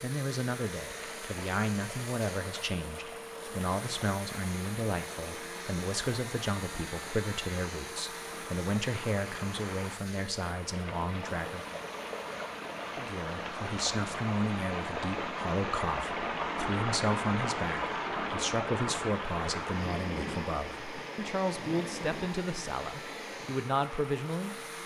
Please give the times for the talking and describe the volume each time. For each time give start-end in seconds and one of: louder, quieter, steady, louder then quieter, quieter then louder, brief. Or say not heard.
0.0-11.8 steady
12.9-24.6 steady.